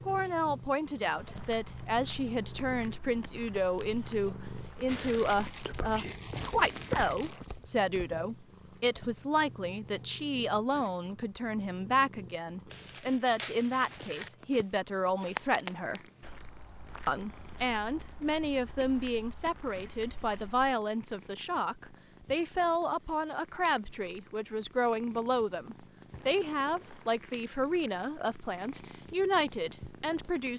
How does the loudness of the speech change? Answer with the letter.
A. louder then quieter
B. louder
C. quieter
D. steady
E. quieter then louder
D.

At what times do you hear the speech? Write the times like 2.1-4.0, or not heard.
0.1-16.0, 17.1-30.5.